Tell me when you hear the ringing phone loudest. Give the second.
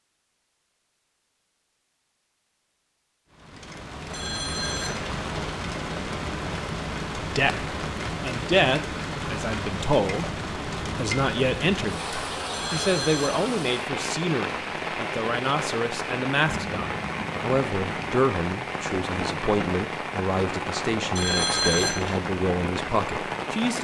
22 s.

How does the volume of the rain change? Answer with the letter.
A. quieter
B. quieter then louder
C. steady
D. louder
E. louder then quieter
C.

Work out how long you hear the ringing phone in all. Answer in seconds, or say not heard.
3 s.